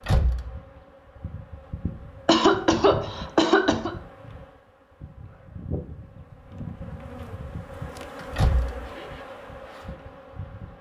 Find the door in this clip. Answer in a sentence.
You can hear the door from 0.1 to 0.6 s and from 8.3 to 8.9 s.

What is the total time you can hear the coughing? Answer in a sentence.
You can hear the coughing for 2 seconds altogether.